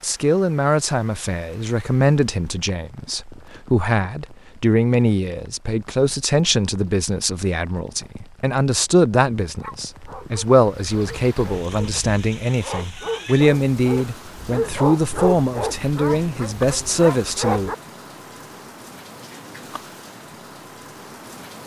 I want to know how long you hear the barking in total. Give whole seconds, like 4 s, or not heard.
8 s.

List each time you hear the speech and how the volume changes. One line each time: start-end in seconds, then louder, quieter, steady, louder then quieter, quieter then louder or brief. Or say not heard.
0.0-17.7 steady.